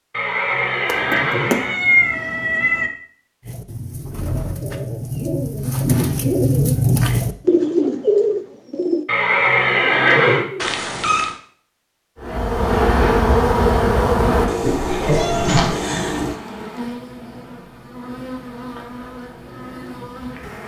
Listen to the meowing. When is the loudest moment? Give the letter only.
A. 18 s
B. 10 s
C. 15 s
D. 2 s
D.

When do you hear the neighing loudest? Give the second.
10 s.